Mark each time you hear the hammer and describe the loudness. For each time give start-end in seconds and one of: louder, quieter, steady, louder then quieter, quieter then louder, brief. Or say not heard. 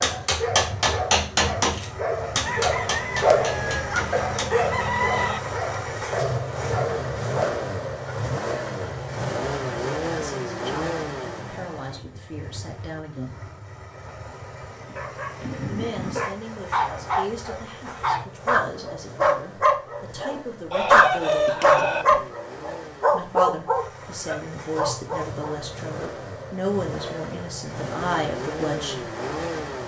0.0-4.5 quieter.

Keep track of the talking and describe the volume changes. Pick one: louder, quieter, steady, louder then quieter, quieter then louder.
louder.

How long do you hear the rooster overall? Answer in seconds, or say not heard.
4 s.